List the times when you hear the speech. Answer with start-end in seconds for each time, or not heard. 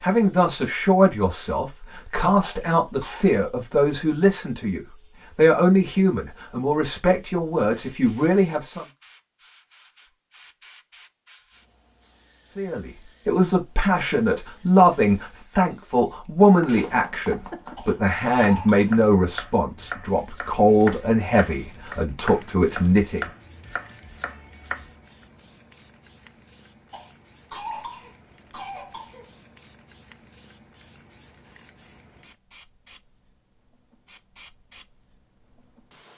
0.0-8.8, 12.6-23.2.